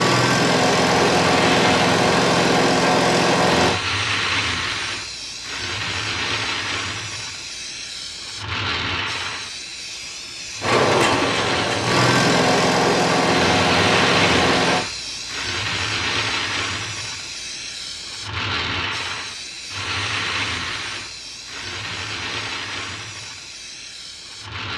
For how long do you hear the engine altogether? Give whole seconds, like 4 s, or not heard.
8 s.